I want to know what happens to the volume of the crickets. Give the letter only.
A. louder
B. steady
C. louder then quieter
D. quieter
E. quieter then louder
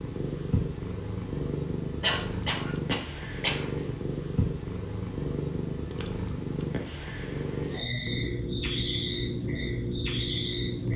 B.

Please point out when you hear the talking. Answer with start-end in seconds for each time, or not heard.
not heard.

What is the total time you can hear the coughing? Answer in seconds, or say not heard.
2 s.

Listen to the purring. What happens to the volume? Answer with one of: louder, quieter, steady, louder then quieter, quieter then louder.
steady.